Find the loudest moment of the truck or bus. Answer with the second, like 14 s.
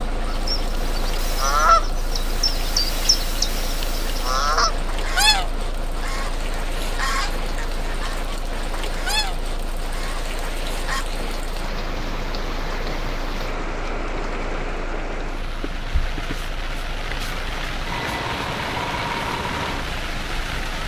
19 s.